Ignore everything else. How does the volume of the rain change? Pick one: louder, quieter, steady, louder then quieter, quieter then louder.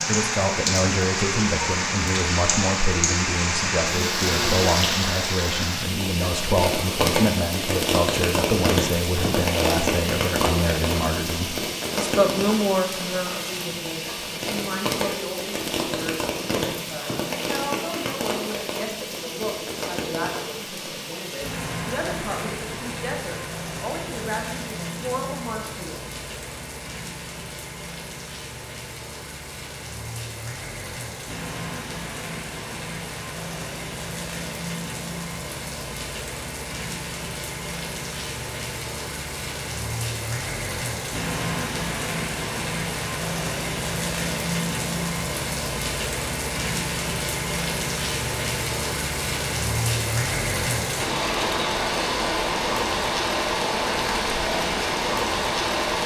quieter then louder.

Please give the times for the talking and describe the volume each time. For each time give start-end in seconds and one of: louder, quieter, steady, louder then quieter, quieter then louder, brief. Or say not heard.
0.1-25.9 quieter.